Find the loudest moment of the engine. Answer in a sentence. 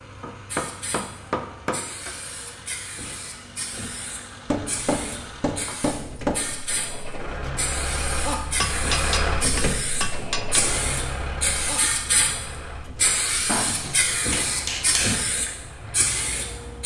The loudest moment of the engine is at 9 seconds.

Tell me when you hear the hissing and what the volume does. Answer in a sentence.
The hissing can be heard from 0.0 to 16.8 s, getting louder.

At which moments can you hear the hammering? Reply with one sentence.
You can hear the hammering from 0.2 to 1.9 s, from 4.5 to 6.6 s, from 8.6 to 10.7 s and from 13.4 to 15.2 s.